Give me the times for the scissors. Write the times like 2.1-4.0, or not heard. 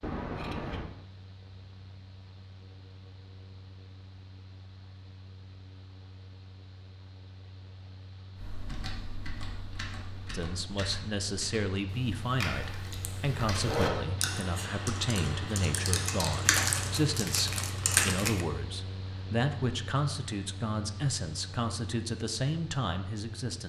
0.0-0.8.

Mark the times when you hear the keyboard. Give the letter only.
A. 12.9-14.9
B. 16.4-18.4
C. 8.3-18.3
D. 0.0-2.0
C.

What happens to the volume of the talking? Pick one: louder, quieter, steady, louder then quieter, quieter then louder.
steady.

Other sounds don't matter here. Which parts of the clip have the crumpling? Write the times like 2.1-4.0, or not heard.
16.4-18.4.